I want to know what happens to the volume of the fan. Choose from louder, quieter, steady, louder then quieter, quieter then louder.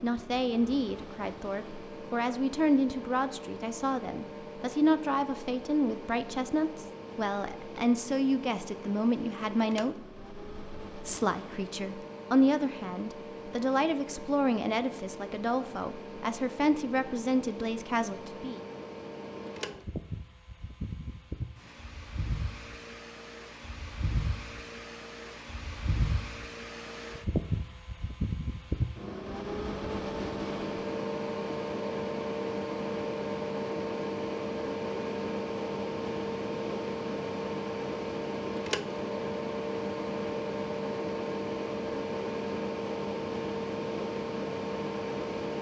louder.